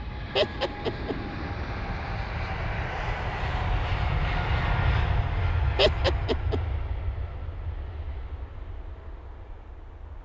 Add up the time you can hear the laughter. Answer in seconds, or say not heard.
2 s.